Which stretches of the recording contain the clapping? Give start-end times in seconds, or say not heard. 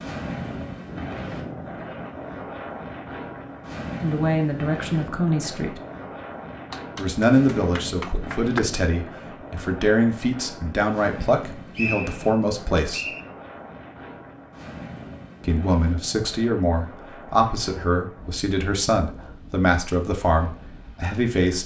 6.7-8.6.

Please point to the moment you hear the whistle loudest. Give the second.
12 s.